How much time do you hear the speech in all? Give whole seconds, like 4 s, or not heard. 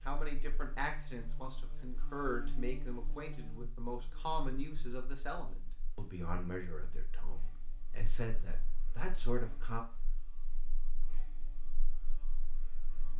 10 s.